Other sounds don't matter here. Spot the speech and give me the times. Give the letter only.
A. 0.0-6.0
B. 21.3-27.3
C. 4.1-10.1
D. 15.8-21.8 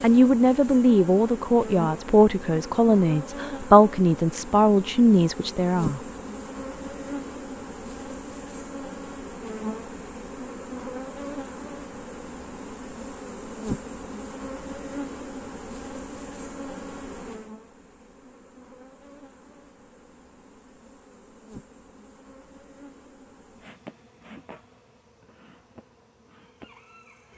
A.